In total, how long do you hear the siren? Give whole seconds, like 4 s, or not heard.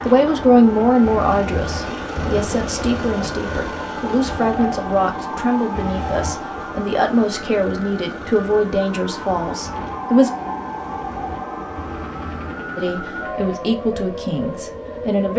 15 s.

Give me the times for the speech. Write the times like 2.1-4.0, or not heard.
0.0-10.3, 12.8-15.3.